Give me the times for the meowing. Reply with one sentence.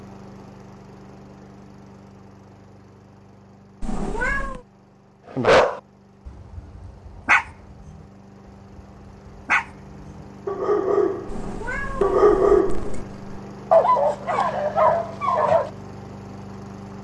You can hear the meowing from 3.8 to 4.6 s and from 11.2 to 13.1 s.